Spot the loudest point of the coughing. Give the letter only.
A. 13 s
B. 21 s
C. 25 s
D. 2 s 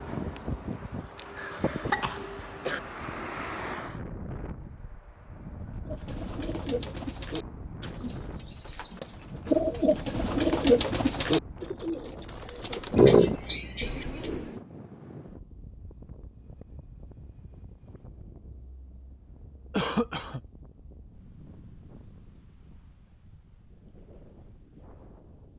A.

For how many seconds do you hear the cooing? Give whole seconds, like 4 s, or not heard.
9 s.